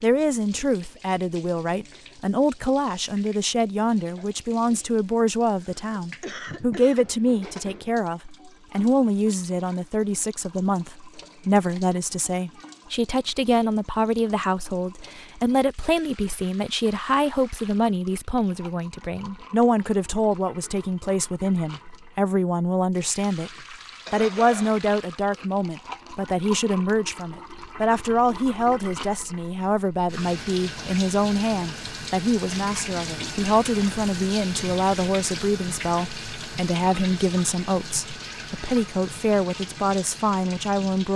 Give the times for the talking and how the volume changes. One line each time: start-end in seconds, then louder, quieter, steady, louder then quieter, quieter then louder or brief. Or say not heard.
0.0-41.1 steady.